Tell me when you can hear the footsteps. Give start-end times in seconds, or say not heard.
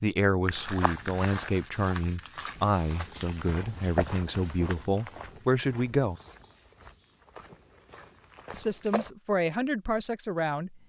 0.5-9.1.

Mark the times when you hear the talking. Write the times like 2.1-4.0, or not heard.
0.0-6.2, 8.5-10.8.